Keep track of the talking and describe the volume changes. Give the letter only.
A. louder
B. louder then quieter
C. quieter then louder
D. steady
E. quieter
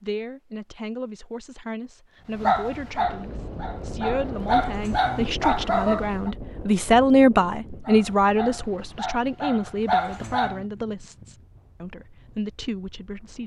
B.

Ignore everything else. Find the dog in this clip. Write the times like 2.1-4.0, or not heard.
2.4-6.3, 7.8-10.7.